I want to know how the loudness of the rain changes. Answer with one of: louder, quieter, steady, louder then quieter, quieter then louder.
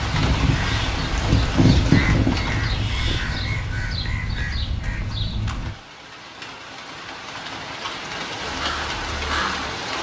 quieter then louder.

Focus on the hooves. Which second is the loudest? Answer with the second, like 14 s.
2 s.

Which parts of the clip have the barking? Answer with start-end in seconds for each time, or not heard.
not heard.